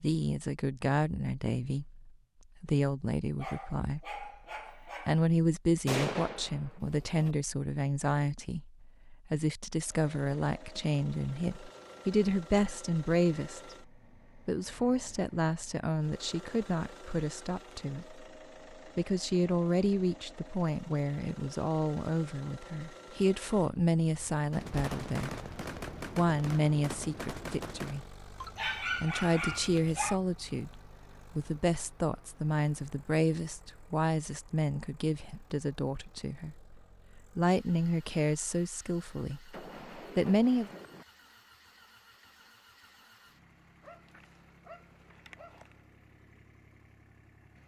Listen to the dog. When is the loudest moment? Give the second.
29 s.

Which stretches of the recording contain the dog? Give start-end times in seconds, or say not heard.
3.4-5.2, 28.4-30.2, 43.8-45.8.